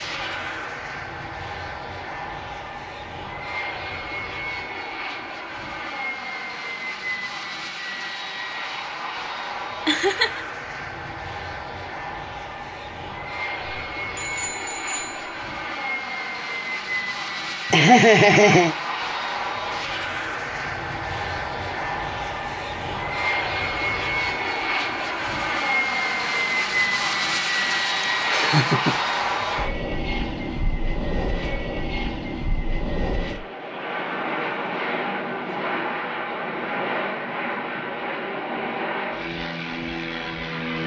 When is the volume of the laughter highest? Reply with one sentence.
The volume of the laughter peaks at 18 seconds.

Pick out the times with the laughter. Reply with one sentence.
You can hear the laughter from 9.8 to 10.4 s, from 17.7 to 18.8 s and from 28.0 to 28.9 s.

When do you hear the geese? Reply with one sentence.
The geese can't be heard in this clip.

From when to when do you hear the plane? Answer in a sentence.
You can hear the plane from 0.0 to 40.8 s.